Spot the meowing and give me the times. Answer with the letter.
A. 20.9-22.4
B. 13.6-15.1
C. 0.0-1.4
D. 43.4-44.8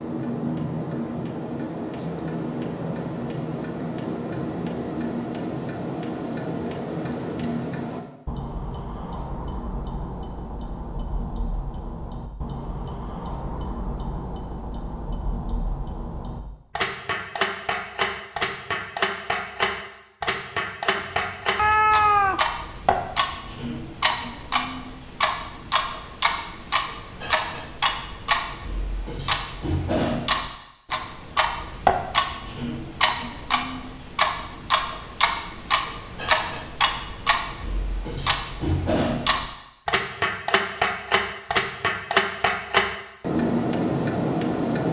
A.